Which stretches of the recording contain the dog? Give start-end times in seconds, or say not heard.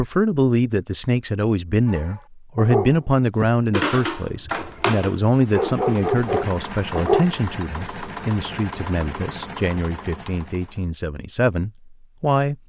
1.9-7.3.